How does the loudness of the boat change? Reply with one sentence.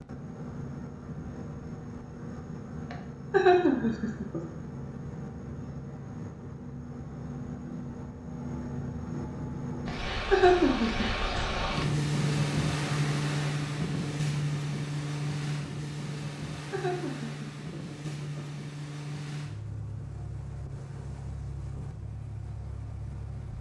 The loudness of the boat goes up, then down.